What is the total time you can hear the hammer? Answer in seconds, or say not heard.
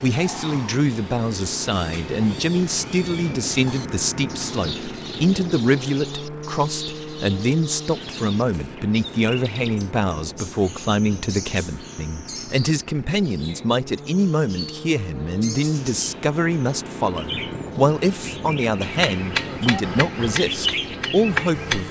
3 s.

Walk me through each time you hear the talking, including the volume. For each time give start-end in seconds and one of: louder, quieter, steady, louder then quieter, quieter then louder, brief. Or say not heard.
0.0-21.8 steady.